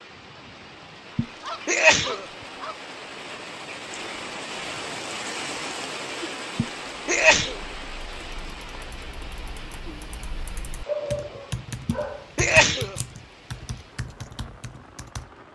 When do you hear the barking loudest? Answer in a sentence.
The loudest moment of the barking is at 11 seconds.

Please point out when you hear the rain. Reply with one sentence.
The rain can be heard from 0.0 to 15.4 s.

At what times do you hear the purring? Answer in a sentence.
The purring can't be heard in this clip.